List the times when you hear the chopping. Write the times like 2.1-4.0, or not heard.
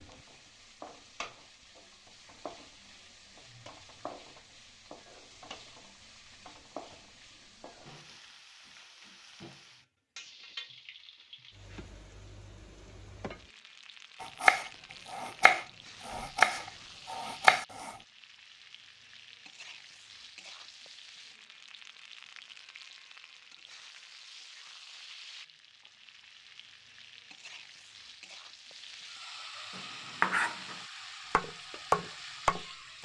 14.2-17.9, 29.8-32.9.